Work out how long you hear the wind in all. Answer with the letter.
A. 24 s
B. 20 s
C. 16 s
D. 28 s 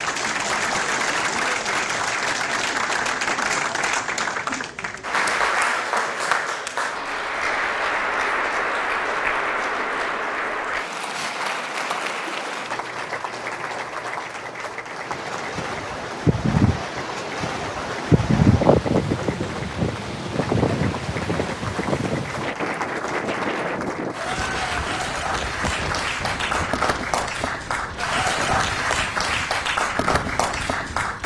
C.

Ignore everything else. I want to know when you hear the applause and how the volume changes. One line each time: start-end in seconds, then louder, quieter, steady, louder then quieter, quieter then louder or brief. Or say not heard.
0.0-31.2 quieter then louder.